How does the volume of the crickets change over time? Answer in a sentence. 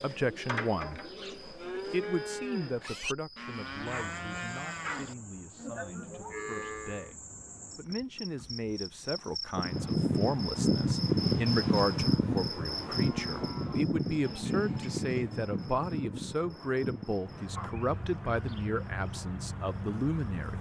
The loudness of the crickets goes up, then down.